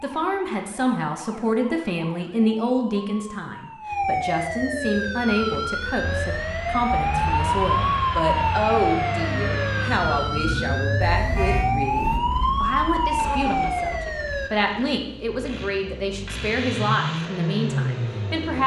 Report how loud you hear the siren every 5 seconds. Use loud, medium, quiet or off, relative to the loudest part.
medium, loud, loud, off.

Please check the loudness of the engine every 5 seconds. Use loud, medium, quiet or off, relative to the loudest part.
off, loud, medium, loud.